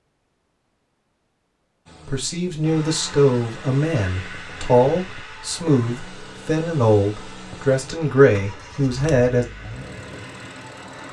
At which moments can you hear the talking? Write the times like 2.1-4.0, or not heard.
2.0-9.4.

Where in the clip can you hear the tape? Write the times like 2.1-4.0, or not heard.
not heard.